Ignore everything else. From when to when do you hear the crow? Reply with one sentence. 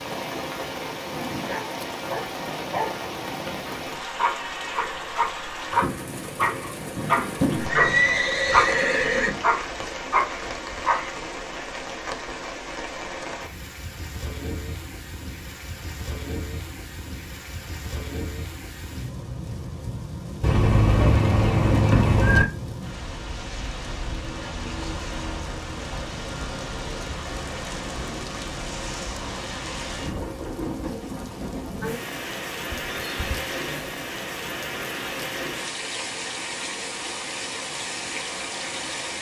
You can't hear the crow here.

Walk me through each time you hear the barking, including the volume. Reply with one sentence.
The barking can be heard from 1.1 to 11.2 s, getting louder.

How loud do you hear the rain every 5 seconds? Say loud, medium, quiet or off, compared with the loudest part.
loud, loud, loud, medium, loud, loud, loud, loud.